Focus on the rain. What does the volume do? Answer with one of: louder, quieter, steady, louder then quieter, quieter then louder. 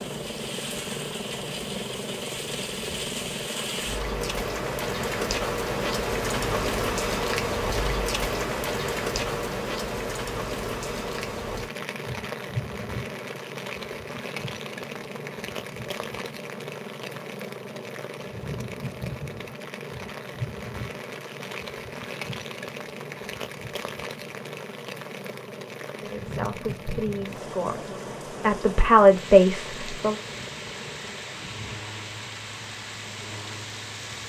quieter.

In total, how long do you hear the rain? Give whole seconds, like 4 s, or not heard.
34 s.